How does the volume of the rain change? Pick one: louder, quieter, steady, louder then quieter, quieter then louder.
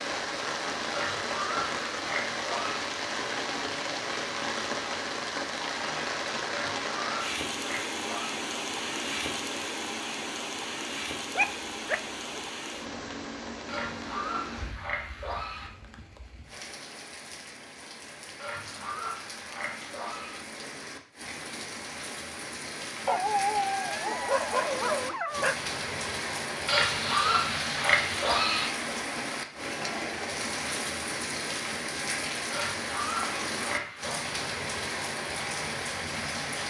quieter then louder.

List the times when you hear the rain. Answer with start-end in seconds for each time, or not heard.
0.0-36.6.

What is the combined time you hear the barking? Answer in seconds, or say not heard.
4 s.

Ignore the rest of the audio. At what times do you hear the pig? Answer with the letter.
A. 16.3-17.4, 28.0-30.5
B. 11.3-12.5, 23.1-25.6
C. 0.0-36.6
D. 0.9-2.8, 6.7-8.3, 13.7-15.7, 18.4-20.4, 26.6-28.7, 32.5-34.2
D.